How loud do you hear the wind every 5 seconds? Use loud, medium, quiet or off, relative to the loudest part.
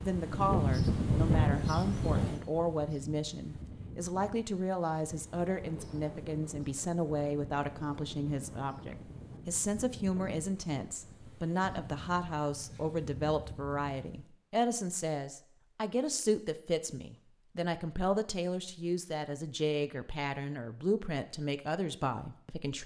loud, quiet, quiet, off, off.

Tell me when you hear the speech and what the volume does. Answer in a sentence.
You can hear the speech from 0.0 to 22.8 s, at a steady volume.